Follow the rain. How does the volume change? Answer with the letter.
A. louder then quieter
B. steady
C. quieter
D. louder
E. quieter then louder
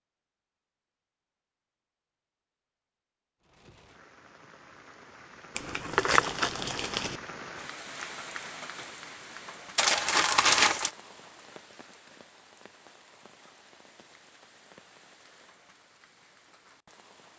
A.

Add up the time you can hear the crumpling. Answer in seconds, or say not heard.
3 s.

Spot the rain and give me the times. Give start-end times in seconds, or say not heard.
3.4-17.3.